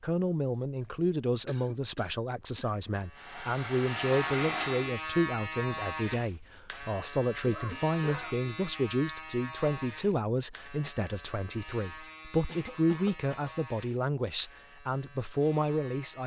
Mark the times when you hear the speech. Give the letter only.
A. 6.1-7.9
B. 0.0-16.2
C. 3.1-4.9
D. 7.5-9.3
B.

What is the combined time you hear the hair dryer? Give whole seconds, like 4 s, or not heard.
2 s.